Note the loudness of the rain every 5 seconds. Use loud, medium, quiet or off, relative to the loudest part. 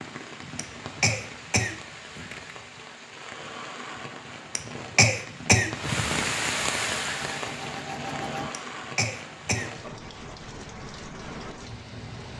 medium, loud, medium.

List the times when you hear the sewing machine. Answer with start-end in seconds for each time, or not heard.
7.0-8.6.